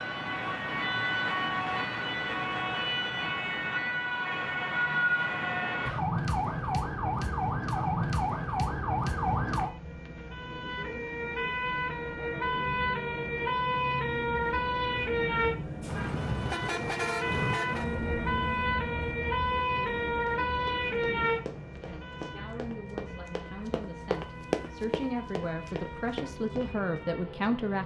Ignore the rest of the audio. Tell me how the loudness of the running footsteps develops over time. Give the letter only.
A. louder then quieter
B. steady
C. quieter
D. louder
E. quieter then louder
A.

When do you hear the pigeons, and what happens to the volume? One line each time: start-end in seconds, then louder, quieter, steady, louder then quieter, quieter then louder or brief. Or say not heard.
not heard.